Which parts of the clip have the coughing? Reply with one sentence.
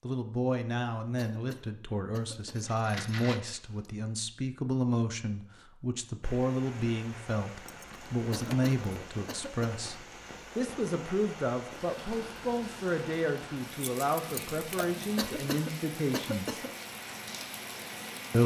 The coughing can be heard from 1.1 to 2.7 s, from 8.3 to 9.8 s and from 15.2 to 16.7 s.